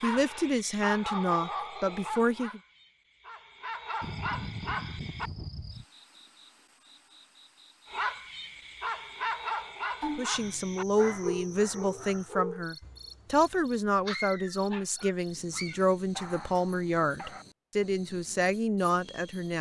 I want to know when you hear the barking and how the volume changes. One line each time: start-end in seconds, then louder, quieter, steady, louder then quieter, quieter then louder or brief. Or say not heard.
0.0-5.3 quieter then louder
7.9-17.4 quieter.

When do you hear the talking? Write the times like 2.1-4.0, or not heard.
0.0-2.6, 10.2-19.5.